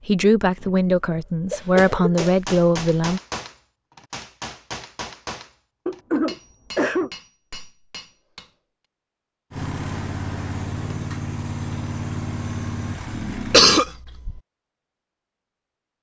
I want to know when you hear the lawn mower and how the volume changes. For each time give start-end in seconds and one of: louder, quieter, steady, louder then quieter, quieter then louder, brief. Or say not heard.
9.5-13.8 steady.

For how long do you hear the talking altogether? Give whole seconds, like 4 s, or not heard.
3 s.